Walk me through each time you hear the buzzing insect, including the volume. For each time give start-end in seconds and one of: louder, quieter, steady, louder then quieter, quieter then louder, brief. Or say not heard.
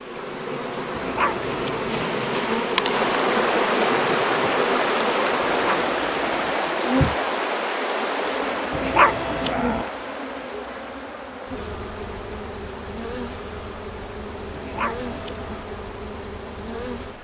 0.0-17.1 quieter.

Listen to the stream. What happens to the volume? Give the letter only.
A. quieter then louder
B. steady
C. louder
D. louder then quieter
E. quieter
E.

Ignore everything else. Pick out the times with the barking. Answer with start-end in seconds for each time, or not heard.
0.9-2.0, 5.5-6.5, 8.7-9.8, 14.5-15.7.